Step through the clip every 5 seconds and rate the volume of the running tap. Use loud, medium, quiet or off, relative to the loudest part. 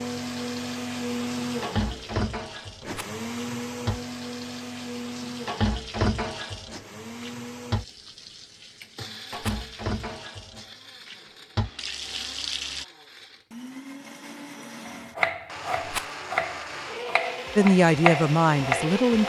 loud, loud, loud, off.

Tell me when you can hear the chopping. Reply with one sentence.
You can hear the chopping from 14.8 to 19.2 s.